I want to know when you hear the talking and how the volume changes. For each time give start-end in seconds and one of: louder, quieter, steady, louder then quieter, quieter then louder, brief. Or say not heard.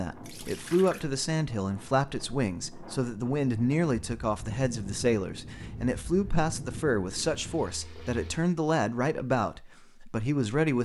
0.0-10.8 steady.